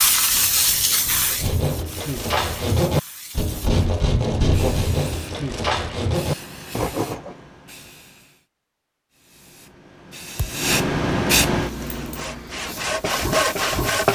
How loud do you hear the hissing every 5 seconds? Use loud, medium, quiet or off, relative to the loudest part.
loud, quiet, loud.